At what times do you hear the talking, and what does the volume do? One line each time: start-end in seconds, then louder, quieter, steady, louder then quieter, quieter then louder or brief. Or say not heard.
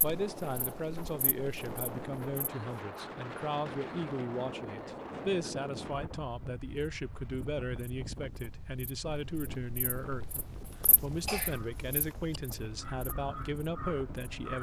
0.0-14.5 steady.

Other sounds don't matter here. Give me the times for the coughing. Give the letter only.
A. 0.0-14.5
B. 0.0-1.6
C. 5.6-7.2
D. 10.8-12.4
D.